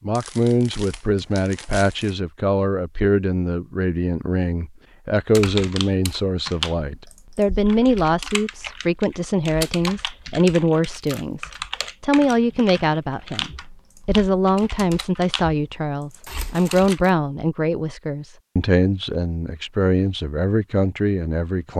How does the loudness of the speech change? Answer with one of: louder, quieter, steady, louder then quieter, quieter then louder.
steady.